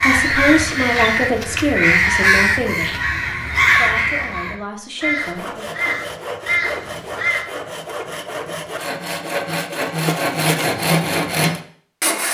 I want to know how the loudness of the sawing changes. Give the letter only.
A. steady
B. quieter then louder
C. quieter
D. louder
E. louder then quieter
D.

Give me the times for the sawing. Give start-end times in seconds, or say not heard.
5.0-12.2.